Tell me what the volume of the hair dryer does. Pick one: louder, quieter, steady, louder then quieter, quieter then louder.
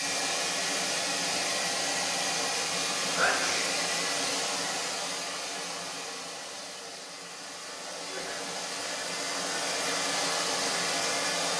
quieter then louder.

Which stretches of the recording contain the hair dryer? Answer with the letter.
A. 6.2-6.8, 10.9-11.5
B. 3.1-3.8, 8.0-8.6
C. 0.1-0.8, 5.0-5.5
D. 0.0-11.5
D.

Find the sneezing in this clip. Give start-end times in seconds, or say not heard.
3.1-3.8, 8.0-8.6.